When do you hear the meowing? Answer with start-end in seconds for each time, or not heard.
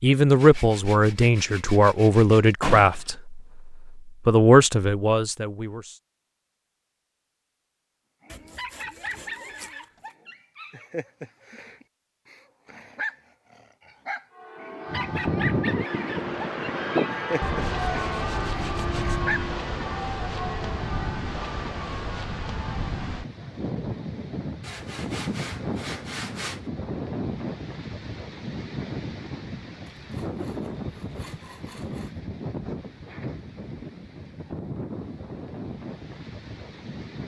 not heard.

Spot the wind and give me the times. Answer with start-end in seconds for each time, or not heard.
14.8-37.2.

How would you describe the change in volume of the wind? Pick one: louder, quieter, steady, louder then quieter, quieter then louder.
quieter.